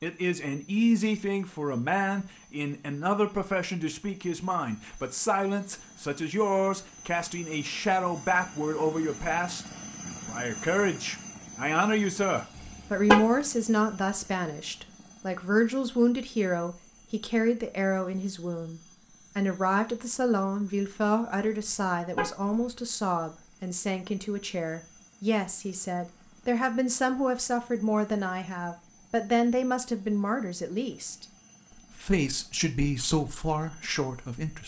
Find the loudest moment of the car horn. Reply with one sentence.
The volume of the car horn peaks at 13 seconds.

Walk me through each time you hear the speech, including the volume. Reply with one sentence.
The speech can be heard from 0.0 to 34.6 s, at a steady volume.